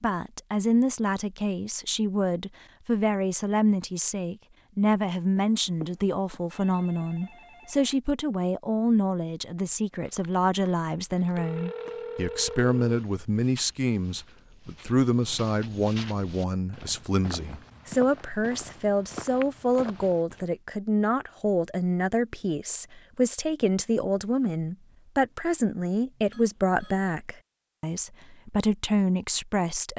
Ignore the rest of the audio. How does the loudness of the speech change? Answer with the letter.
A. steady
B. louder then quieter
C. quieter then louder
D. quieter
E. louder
A.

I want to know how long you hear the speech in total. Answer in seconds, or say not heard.
30 s.